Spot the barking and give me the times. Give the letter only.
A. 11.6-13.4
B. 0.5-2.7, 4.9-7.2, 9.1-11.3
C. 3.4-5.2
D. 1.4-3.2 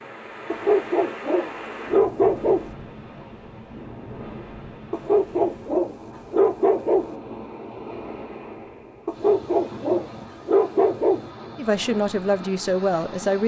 B.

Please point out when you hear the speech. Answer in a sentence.
You can hear the speech from 11.6 to 13.4 s.